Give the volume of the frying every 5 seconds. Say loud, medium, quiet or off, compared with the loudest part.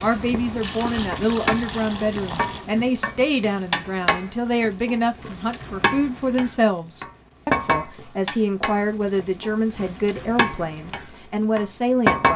medium, medium, loud.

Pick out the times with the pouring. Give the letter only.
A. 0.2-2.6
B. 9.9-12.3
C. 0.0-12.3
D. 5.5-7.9
A.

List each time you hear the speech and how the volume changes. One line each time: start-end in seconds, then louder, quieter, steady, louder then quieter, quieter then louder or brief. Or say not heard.
0.0-12.3 steady.